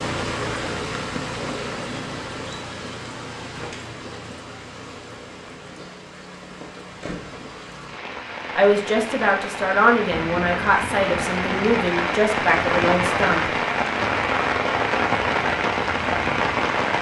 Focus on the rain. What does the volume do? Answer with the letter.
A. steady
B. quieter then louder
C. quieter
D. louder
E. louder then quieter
B.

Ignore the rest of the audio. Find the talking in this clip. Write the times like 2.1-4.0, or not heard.
8.6-13.5.